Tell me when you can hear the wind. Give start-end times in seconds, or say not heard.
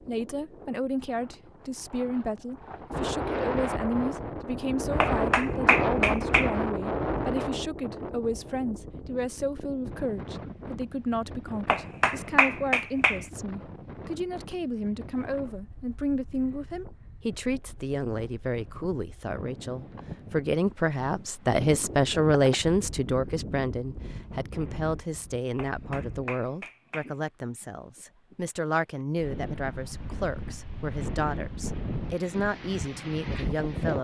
0.0-33.9.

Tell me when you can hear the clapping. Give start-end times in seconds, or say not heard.
5.0-6.5, 11.7-13.2, 25.6-27.1.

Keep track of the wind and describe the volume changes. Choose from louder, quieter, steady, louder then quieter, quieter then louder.
quieter then louder.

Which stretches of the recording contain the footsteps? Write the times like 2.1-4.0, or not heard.
not heard.